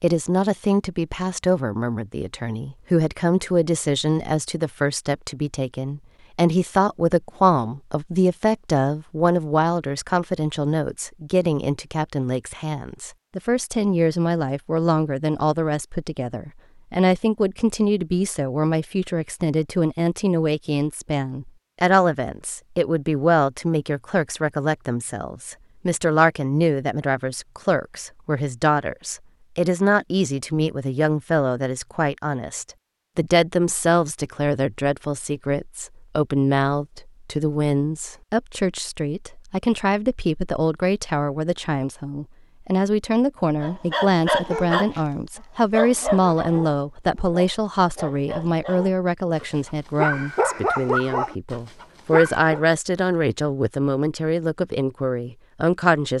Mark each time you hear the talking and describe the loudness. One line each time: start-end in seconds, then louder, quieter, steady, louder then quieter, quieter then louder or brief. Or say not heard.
0.0-56.1 steady.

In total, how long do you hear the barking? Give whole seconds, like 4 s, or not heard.
8 s.